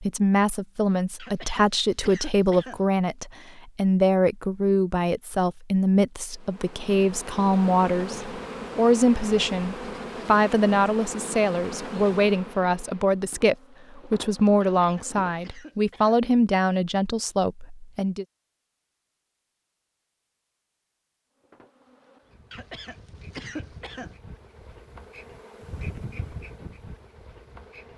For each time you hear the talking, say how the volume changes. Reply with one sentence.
You can hear the talking from 0.0 to 18.2 s, at a steady volume.